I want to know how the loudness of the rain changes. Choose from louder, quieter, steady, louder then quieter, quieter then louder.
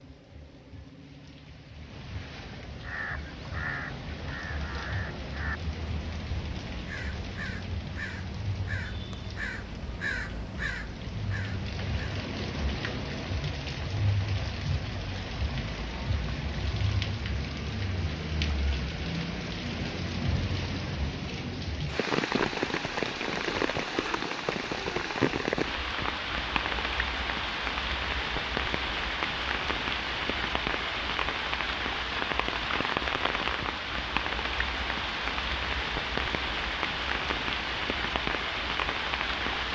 louder.